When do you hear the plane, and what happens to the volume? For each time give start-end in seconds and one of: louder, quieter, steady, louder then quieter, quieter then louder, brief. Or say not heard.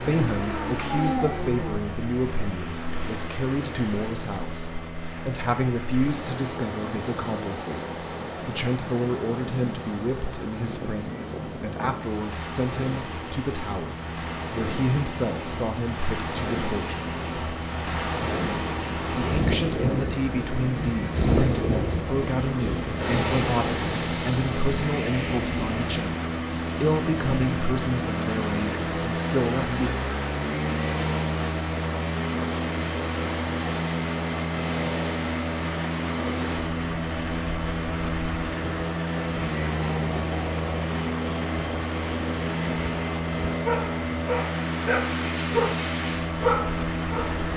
0.0-47.5 louder.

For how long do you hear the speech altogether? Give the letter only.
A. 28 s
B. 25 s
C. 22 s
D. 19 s
A.